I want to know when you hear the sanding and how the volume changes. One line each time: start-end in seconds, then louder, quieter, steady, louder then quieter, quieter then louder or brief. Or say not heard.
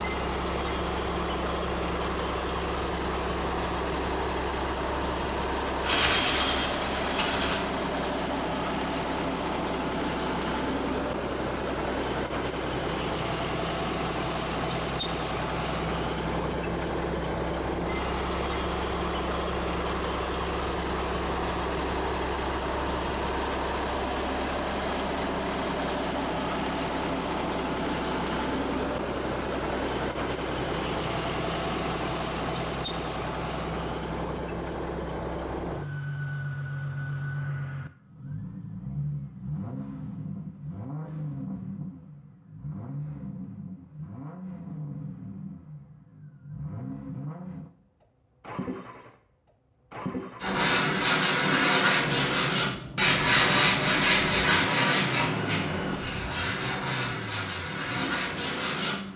5.8-7.6 brief
50.4-59.0 quieter.